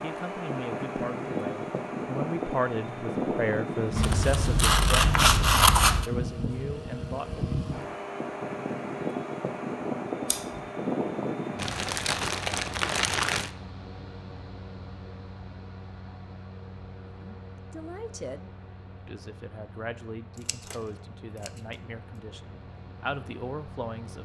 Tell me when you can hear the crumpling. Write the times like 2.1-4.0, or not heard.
11.6-13.5.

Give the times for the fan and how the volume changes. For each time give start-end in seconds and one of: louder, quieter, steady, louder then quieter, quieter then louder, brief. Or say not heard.
0.0-24.1 quieter.